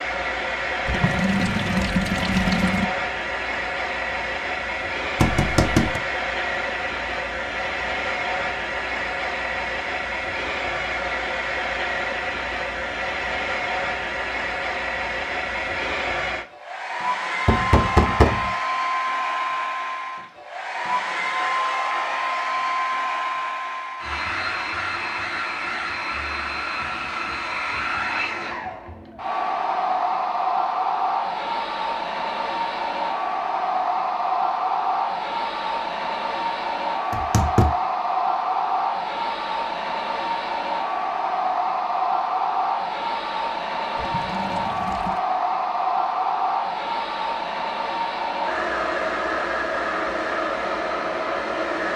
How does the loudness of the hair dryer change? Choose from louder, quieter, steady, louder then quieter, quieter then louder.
steady.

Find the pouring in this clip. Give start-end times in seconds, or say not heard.
0.8-2.9, 44.0-45.2.